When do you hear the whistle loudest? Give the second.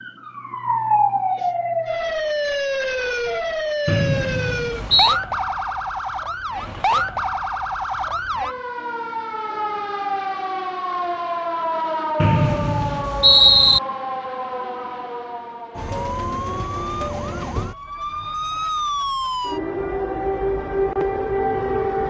13 s.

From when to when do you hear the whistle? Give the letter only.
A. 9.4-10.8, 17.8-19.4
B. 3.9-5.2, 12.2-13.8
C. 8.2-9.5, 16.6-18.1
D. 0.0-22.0
B.